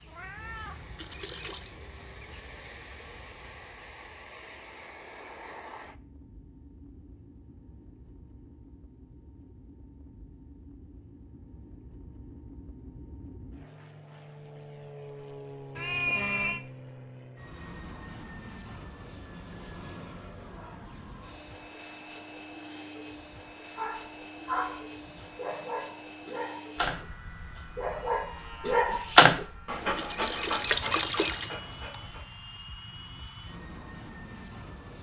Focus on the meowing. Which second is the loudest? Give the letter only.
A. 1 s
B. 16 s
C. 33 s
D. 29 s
B.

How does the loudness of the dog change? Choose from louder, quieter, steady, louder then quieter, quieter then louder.
louder then quieter.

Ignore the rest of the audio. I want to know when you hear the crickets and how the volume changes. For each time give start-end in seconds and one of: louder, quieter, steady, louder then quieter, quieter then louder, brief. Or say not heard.
not heard.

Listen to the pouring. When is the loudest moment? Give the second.
31 s.